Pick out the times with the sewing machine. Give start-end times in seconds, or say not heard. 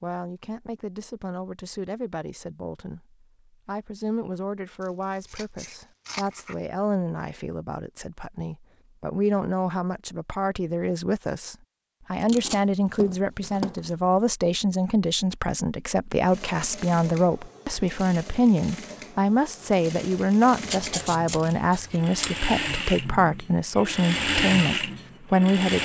16.3-25.8.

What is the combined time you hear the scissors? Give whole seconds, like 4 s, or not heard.
5 s.